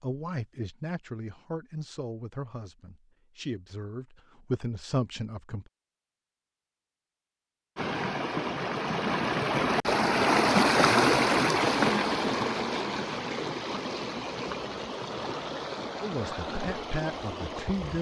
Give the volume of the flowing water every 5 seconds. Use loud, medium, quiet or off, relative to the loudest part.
off, loud, loud, medium.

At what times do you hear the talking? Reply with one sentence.
You can hear the talking from 0.0 to 5.7 s and from 16.0 to 17.9 s.